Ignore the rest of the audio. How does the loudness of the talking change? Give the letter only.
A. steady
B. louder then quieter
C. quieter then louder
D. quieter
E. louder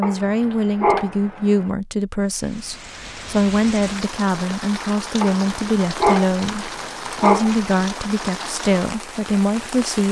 A.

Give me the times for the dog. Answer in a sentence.
The dog can be heard from 0.0 to 1.7 s and from 5.2 to 7.7 s.